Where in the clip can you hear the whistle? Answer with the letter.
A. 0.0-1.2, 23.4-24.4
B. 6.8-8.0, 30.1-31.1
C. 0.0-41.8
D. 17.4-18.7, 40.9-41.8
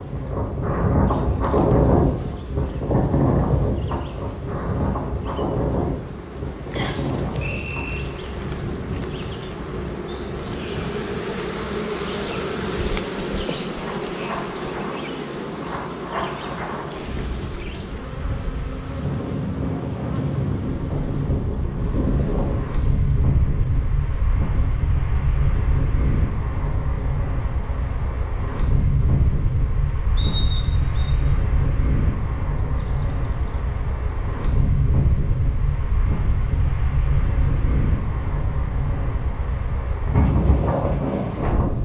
B.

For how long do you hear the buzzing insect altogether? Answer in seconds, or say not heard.
42 s.